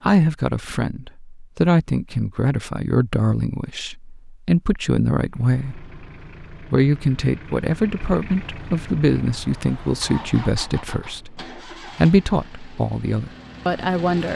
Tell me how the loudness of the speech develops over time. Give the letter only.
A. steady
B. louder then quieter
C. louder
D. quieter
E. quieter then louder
A.